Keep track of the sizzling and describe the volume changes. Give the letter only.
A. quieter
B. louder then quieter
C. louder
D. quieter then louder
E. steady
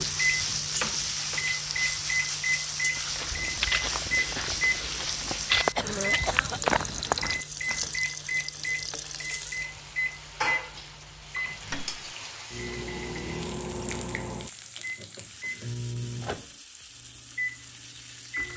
A.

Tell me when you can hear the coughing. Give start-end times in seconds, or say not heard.
5.7-7.2.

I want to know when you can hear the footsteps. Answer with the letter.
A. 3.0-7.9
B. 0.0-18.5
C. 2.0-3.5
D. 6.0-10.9
A.